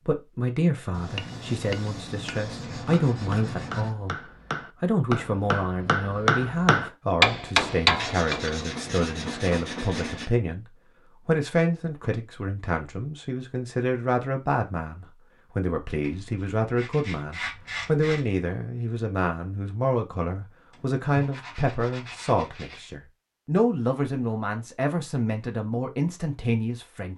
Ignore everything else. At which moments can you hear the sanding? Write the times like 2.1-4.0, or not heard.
0.9-4.0, 8.0-10.3, 16.0-18.3, 20.7-22.9.